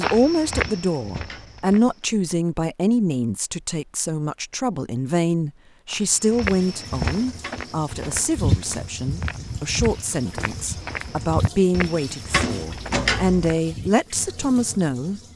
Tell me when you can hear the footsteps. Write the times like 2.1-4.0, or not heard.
0.0-1.8, 5.9-13.9.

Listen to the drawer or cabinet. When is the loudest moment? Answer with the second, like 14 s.
13 s.